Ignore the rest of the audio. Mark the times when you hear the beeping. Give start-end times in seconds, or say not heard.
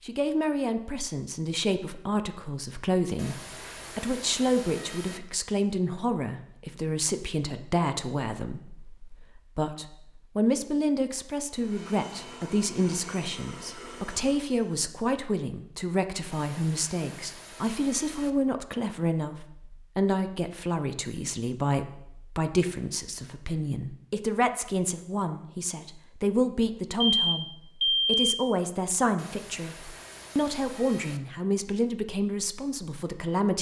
27.1-28.4.